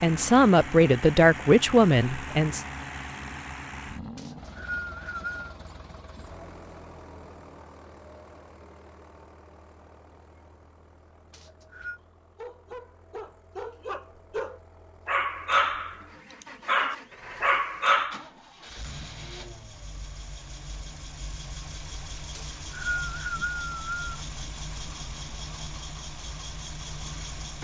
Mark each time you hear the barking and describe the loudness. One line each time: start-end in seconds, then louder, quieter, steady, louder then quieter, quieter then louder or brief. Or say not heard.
12.3-18.2 louder.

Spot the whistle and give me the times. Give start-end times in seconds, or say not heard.
4.2-5.5, 11.3-12.0, 22.3-24.1.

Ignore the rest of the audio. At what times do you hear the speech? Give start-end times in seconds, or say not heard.
0.0-2.6.